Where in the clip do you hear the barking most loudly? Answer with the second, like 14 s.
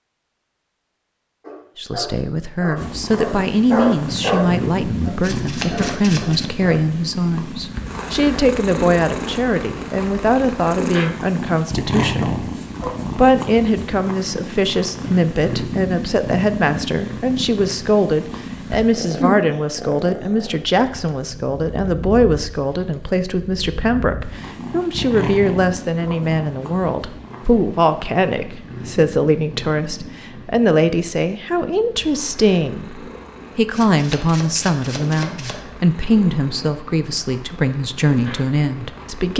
4 s.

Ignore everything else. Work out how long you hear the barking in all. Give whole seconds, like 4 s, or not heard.
5 s.